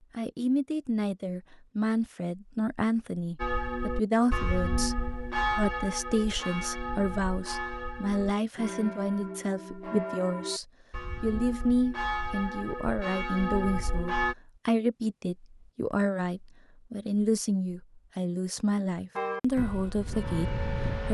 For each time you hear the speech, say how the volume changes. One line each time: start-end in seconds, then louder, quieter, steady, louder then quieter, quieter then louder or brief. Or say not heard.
0.1-21.0 steady.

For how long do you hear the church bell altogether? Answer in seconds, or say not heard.
13 s.